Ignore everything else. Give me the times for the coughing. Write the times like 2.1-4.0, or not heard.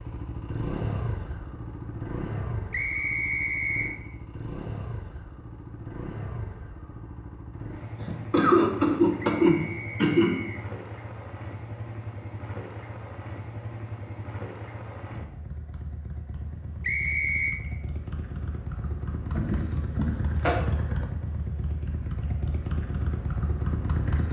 8.0-10.3, 19.4-20.6.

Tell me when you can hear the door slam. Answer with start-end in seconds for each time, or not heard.
not heard.